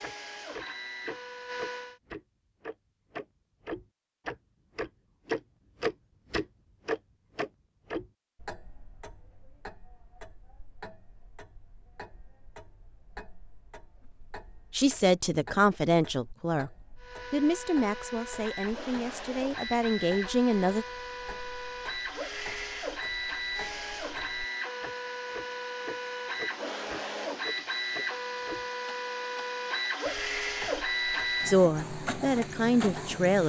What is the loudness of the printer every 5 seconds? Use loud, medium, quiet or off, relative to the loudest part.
medium, off, off, medium, loud, loud, loud.